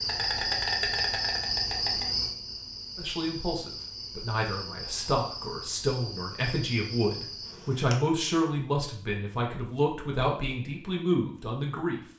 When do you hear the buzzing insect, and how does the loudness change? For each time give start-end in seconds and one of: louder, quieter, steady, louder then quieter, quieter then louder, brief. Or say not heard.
0.0-8.0 quieter.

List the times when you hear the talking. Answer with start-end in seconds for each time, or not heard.
3.0-12.0.